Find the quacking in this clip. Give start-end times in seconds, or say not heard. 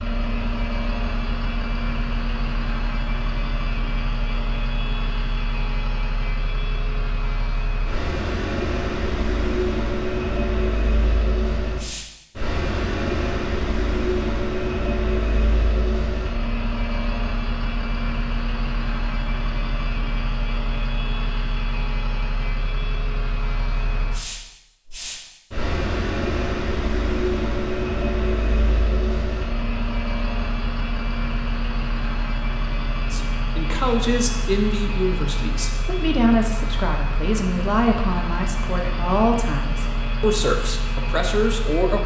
not heard.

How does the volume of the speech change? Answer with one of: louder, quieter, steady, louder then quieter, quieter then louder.
steady.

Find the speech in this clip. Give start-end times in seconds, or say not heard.
33.0-42.0.